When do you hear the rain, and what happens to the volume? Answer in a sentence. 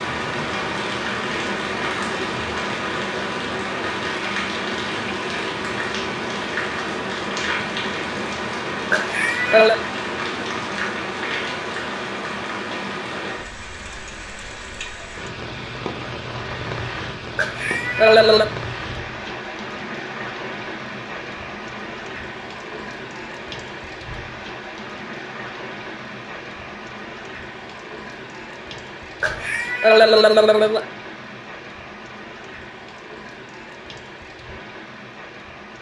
The rain can be heard from 0.0 to 35.7 s, getting quieter.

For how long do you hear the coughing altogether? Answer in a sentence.
The coughing can be heard for 4 seconds in total.